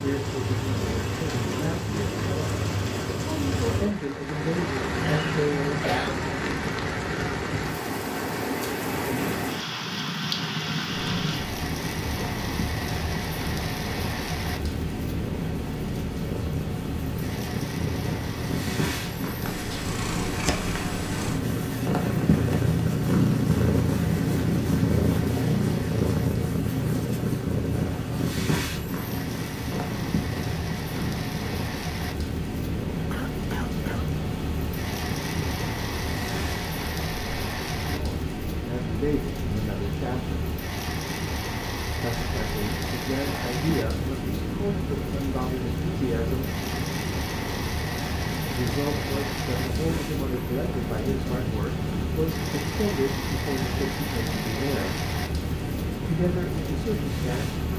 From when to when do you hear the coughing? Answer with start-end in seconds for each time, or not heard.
5.0-6.2, 33.1-34.1.